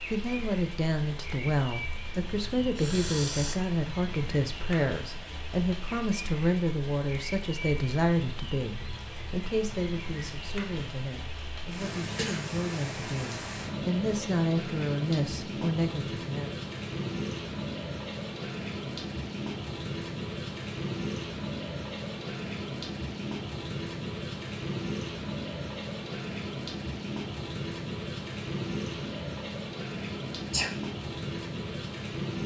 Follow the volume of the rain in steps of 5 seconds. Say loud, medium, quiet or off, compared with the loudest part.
medium, medium, loud, loud, loud, loud, loud.